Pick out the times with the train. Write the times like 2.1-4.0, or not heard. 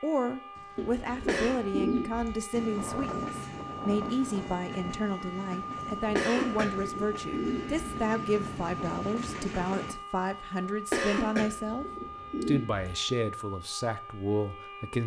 2.5-9.9.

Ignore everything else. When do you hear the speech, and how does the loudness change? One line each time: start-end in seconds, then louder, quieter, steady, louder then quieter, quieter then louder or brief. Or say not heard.
0.0-15.0 steady.